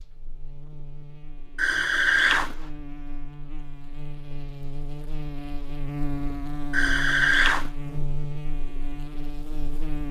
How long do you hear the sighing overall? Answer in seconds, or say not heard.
2 s.